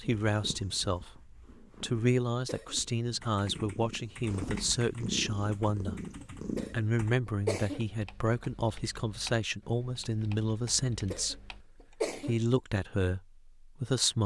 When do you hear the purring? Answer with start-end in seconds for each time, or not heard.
0.2-6.8.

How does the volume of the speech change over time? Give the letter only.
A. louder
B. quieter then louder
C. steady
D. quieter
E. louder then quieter
C.